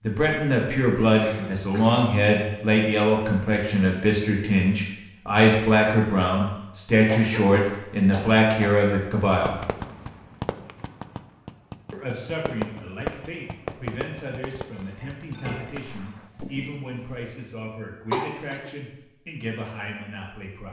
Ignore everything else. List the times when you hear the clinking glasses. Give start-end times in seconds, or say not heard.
14.7-16.6.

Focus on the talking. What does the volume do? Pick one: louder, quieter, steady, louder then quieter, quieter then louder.
quieter.